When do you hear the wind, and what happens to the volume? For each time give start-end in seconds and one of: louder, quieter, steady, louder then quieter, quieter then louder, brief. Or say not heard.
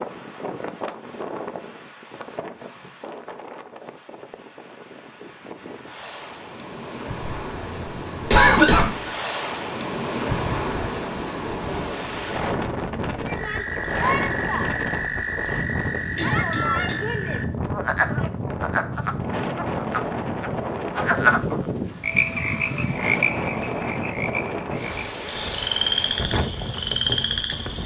0.0-27.8 louder.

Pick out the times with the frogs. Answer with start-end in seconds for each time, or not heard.
13.2-27.8.